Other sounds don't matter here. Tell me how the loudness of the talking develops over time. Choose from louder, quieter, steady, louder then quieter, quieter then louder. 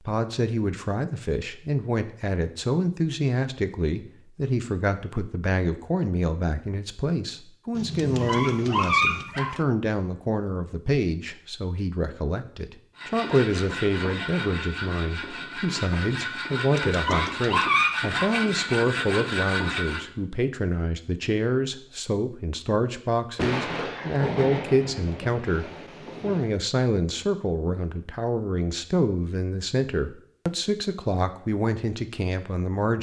steady.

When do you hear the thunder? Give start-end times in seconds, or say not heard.
7.8-9.2, 23.4-26.5.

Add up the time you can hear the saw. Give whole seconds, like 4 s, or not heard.
7 s.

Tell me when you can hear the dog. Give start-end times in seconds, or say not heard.
8.0-9.7, 16.8-18.2.